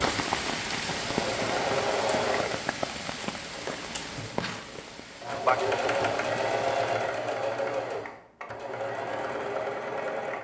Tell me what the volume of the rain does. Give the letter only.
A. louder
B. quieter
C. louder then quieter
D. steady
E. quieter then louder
E.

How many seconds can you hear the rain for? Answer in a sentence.
You can hear the rain for 7 seconds altogether.